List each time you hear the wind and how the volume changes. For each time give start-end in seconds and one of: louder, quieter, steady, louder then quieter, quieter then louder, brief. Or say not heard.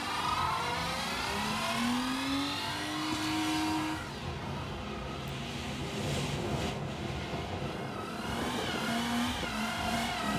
0.0-10.3 louder then quieter.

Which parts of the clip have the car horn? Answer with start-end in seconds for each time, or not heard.
not heard.